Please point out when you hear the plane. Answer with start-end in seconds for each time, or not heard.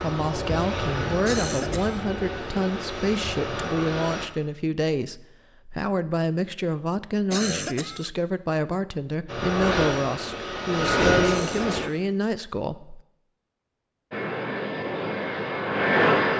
0.0-4.3, 9.2-11.9, 14.1-16.3.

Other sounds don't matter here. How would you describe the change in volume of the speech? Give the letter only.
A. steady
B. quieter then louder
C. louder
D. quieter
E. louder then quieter
A.